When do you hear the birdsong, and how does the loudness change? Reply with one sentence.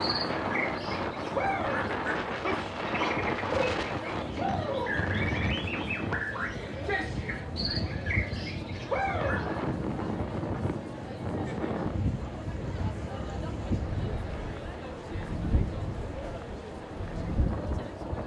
The birdsong can be heard from 0.0 to 9.6 s, at a steady volume.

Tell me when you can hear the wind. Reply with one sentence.
You can hear the wind from 0.0 to 18.2 s.